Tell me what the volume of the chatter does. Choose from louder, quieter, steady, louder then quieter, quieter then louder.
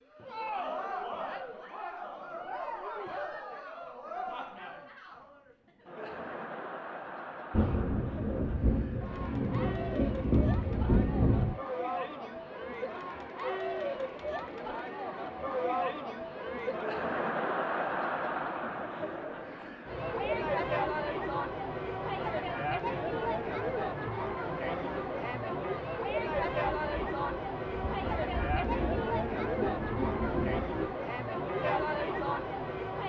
louder.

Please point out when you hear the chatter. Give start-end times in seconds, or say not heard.
0.1-33.0.